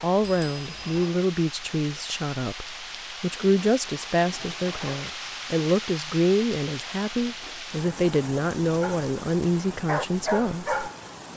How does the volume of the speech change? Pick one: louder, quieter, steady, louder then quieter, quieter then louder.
steady.